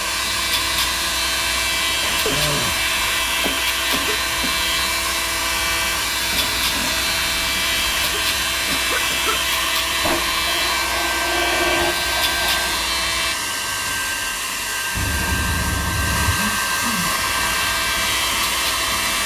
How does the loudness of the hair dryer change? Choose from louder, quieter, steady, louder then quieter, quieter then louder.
steady.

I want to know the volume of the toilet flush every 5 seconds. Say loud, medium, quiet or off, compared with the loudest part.
off, medium, loud, off.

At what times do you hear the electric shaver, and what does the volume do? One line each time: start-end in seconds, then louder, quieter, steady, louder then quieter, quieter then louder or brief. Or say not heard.
0.0-13.3 steady
17.1-19.2 brief.